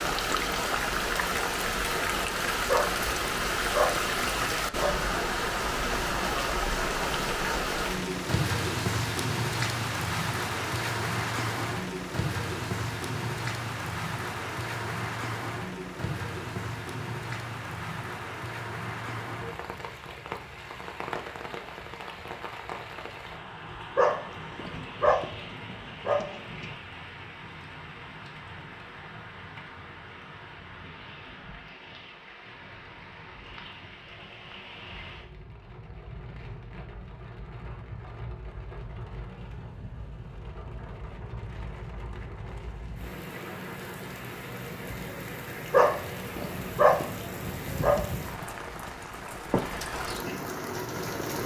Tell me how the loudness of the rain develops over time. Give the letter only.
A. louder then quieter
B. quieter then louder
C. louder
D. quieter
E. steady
B.